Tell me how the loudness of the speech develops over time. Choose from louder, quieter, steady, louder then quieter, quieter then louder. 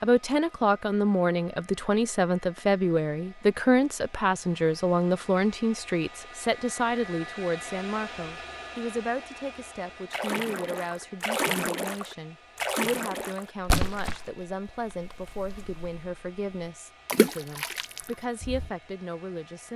quieter.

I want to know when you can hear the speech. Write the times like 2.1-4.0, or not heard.
0.0-19.7.